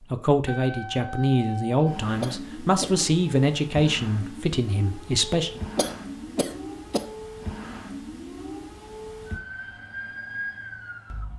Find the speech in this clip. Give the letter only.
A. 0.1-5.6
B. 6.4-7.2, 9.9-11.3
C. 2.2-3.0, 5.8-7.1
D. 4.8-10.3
A.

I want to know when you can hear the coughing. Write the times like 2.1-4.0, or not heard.
2.2-3.0, 5.8-7.1.